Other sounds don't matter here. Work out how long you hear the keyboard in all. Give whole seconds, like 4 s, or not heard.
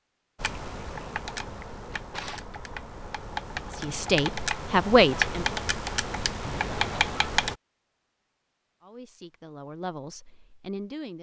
7 s.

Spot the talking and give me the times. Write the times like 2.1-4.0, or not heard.
3.7-5.5, 8.8-11.1.